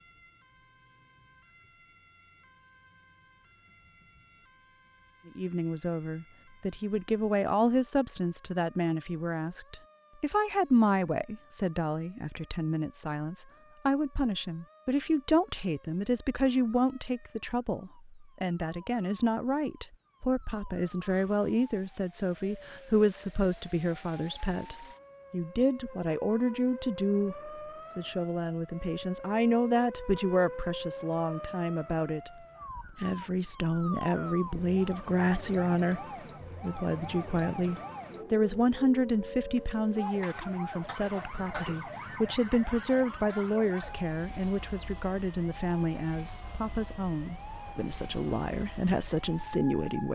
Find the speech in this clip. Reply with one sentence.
The speech can be heard from 5.2 to 32.3 s and from 32.9 to 50.1 s.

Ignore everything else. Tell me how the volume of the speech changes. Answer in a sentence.
The volume of the speech stays about the same.